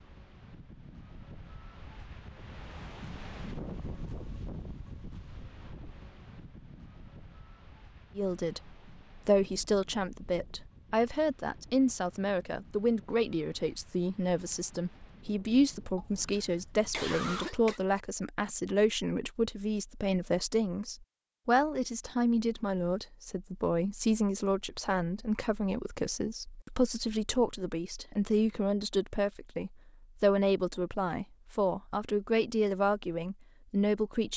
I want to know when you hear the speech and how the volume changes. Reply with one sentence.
The speech can be heard from 8.2 to 34.3 s, at a steady volume.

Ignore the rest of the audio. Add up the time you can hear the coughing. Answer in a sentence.
You can hear the coughing for 2 seconds altogether.